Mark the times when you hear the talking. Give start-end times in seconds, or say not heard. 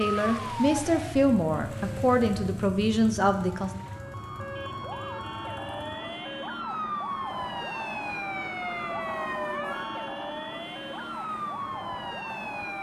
0.0-3.7.